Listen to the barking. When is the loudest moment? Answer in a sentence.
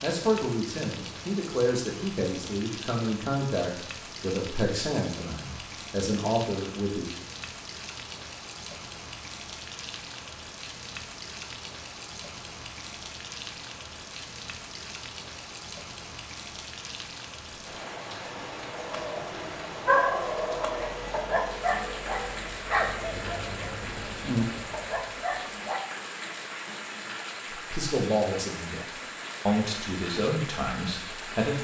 The loudest moment of the barking is at 20 seconds.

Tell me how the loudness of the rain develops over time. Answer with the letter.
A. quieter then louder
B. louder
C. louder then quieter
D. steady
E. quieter
D.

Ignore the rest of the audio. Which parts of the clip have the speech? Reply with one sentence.
The speech can be heard from 0.0 to 7.1 s and from 27.5 to 31.6 s.